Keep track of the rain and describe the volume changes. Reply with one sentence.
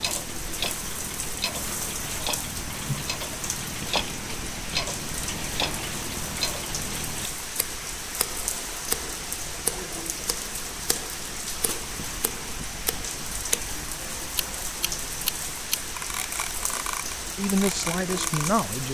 The volume of the rain stays about the same.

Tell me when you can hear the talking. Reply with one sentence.
You can hear the talking from 17.4 to 18.8 s.